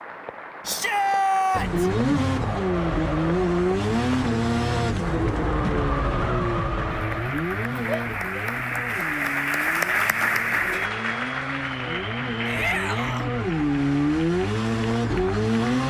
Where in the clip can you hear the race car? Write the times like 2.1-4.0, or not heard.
1.5-15.8.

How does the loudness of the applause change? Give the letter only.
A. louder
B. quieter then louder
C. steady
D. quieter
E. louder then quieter
E.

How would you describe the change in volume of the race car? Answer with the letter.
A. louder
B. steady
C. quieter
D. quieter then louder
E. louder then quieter
D.